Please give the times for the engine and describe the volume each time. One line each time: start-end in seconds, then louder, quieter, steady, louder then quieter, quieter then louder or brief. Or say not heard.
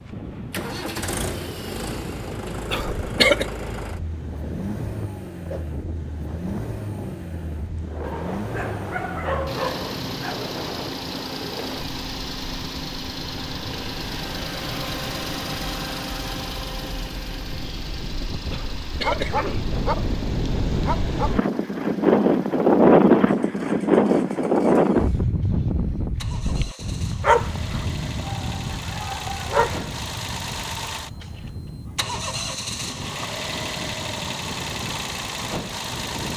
0.0-36.3 quieter then louder.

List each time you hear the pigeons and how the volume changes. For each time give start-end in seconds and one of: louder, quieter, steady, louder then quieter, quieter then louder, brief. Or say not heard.
not heard.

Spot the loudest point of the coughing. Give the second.
3 s.